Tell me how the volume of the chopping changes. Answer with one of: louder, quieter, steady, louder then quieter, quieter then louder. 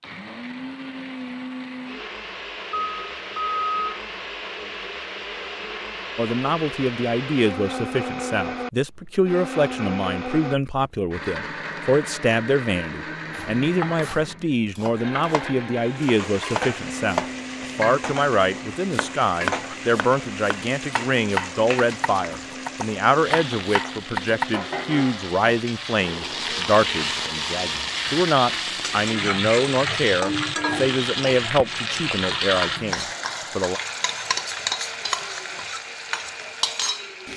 louder.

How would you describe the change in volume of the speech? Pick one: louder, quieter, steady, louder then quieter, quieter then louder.
steady.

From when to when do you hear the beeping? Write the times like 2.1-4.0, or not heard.
2.7-4.0.